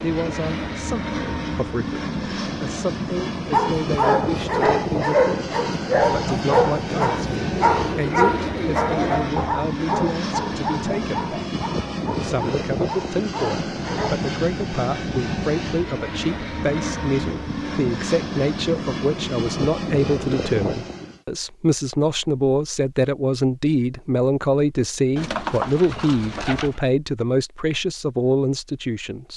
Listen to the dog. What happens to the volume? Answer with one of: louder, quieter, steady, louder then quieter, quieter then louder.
quieter.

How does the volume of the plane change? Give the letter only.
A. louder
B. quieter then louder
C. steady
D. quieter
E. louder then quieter
C.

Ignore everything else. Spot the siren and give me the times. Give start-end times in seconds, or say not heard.
not heard.